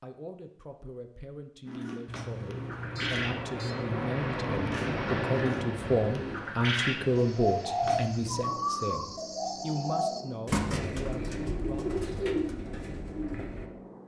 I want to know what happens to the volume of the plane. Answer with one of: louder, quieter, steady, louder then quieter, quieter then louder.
quieter.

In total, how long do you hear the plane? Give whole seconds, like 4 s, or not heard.
12 s.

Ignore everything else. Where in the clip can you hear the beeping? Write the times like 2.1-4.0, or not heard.
2.0-4.0, 7.8-8.4.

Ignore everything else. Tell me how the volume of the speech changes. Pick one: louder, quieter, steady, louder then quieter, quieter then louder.
louder then quieter.